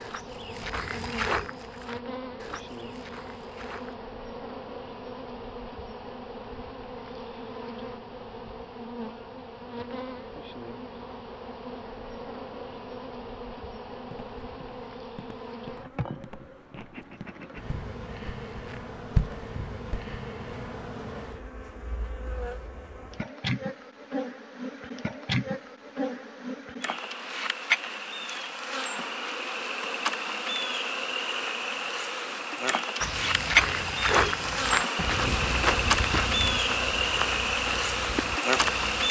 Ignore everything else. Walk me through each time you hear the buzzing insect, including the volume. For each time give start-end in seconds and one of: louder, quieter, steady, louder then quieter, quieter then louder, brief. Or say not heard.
0.0-39.0 louder.